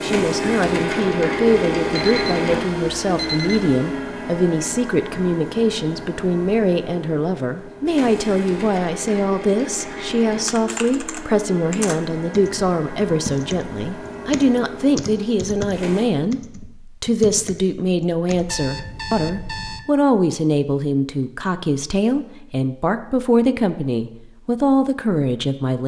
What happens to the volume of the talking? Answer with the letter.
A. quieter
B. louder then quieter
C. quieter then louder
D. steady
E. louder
D.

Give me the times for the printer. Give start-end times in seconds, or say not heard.
0.0-16.1.